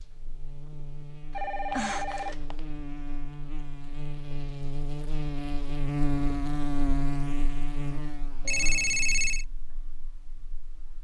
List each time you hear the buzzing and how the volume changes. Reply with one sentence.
The buzzing can be heard from 0.0 to 10.9 s, getting louder then quieter.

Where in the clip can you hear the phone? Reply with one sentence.
You can hear the phone from 1.3 to 2.6 s and from 8.4 to 9.4 s.